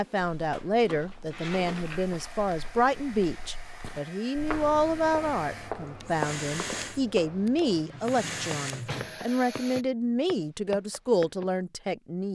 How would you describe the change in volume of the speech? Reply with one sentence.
The volume of the speech stays about the same.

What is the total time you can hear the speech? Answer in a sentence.
The speech can be heard for 12 seconds in total.